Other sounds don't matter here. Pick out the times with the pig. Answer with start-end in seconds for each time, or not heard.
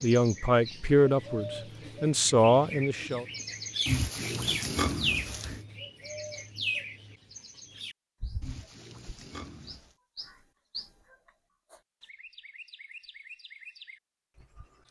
3.9-5.6, 8.4-9.9.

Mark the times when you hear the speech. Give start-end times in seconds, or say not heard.
0.0-3.2.